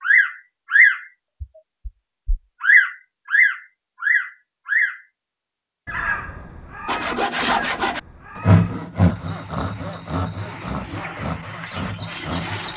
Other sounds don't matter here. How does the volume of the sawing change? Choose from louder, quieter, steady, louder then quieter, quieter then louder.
quieter.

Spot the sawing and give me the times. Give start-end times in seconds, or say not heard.
6.8-12.7.